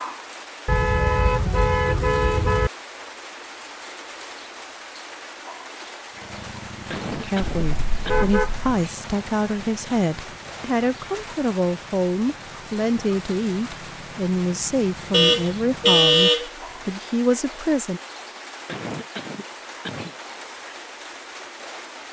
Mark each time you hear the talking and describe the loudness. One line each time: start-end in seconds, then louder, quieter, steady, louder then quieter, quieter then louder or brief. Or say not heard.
7.1-18.0 steady.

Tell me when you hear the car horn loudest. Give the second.
16 s.